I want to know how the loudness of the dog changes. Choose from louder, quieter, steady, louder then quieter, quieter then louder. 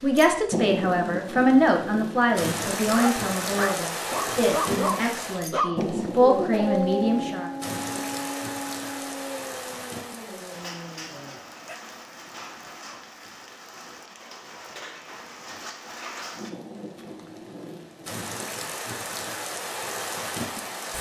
quieter.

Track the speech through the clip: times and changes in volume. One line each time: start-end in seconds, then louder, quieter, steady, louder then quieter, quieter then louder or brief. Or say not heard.
0.0-7.5 quieter then louder.